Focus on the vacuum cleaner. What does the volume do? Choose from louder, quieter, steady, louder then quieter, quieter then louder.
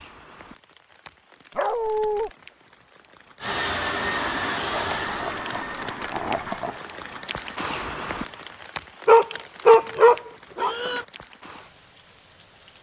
quieter.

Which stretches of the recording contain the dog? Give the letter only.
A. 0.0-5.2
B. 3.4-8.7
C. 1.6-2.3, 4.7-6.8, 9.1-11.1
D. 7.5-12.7
C.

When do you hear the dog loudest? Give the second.
10 s.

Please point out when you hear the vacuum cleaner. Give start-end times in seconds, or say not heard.
3.4-8.7.